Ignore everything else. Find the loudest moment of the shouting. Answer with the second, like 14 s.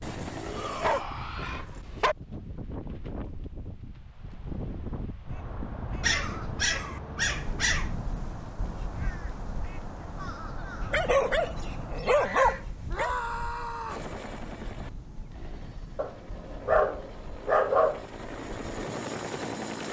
13 s.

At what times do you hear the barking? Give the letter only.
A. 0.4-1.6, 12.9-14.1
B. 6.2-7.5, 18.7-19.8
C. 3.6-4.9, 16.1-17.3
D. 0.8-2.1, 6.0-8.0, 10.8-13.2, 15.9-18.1
D.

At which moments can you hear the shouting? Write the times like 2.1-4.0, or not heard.
0.4-1.6, 12.9-14.1.